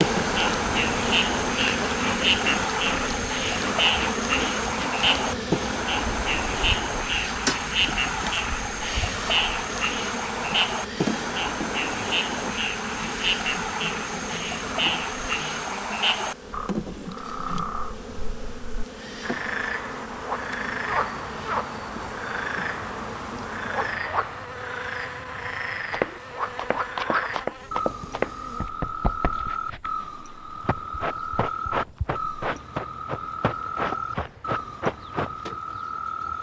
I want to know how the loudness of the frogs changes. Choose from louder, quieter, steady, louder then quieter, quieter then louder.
quieter.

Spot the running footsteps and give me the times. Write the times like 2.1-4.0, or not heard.
25.9-35.5.